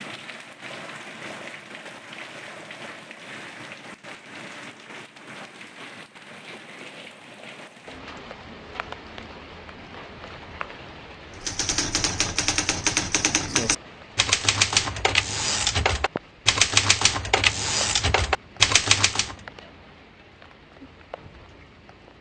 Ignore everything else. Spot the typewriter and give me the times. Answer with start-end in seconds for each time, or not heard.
11.3-19.4.